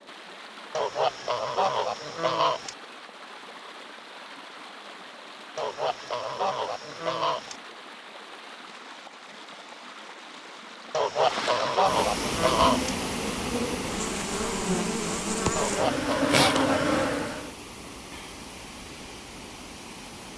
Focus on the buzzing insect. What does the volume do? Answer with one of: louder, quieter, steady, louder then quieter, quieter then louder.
louder.